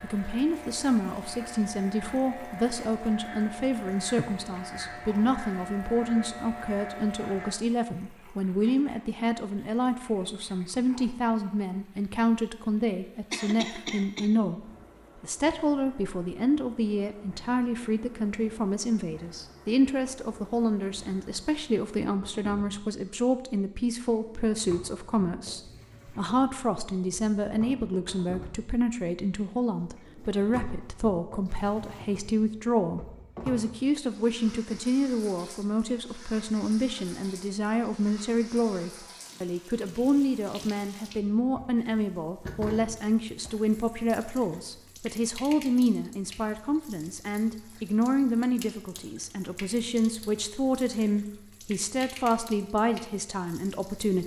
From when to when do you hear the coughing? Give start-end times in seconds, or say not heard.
13.3-14.3.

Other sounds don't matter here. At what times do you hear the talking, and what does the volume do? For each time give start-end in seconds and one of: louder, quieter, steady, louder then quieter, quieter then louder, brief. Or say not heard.
0.0-54.2 steady.